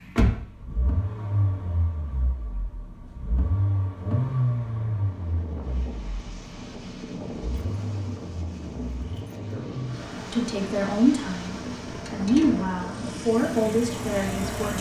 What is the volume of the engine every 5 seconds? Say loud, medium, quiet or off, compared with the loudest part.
loud, medium, medium.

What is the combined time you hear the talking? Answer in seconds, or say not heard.
5 s.